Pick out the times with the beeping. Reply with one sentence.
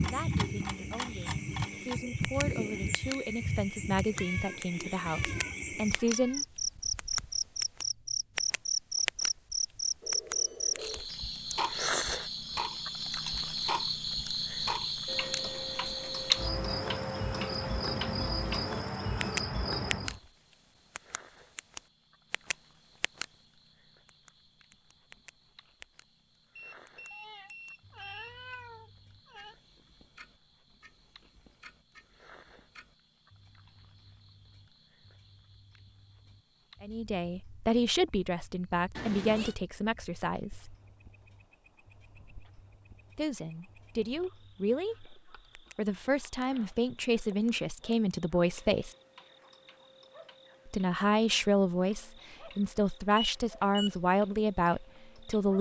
You can hear the beeping from 10.0 to 11.1 s, from 26.6 to 28.4 s and from 53.1 to 54.0 s.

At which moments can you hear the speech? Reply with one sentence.
You can hear the speech from 0.0 to 6.5 s, from 36.8 to 40.8 s, from 43.1 to 49.0 s and from 50.6 to 55.5 s.